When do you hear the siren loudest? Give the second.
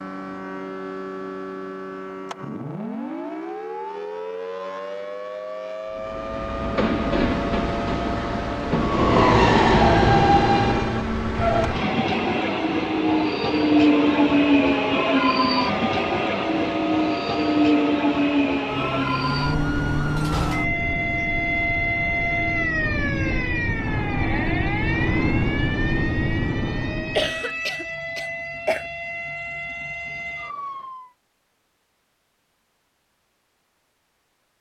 22 s.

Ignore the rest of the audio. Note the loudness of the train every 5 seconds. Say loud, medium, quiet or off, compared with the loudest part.
off, loud, loud, loud, medium, medium, off.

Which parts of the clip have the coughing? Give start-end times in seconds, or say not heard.
27.1-28.9.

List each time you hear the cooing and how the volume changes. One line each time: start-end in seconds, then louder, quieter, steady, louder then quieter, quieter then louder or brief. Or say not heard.
not heard.